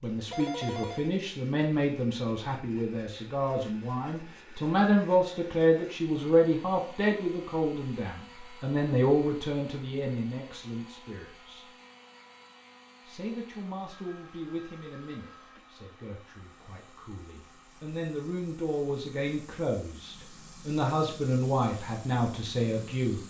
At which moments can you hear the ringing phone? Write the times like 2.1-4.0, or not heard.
0.3-1.1, 13.9-15.7.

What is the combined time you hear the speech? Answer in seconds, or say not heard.
22 s.